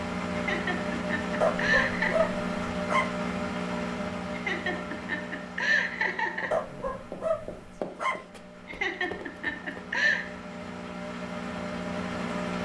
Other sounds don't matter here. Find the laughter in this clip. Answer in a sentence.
The laughter can be heard from 0.3 to 2.3 s, from 4.3 to 6.5 s and from 8.7 to 10.2 s.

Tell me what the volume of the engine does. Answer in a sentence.
The volume of the engine goes down, then up.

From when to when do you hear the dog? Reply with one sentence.
You can hear the dog from 1.4 to 3.1 s and from 6.5 to 8.2 s.